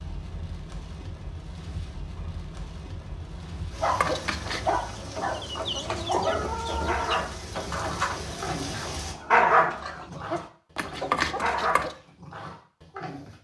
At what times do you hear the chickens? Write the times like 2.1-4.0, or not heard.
3.9-11.9.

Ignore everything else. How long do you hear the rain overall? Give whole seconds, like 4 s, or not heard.
9 s.